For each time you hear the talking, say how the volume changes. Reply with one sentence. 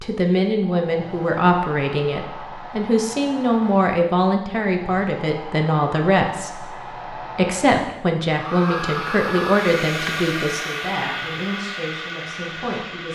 You can hear the talking from 0.0 to 13.0 s, getting quieter.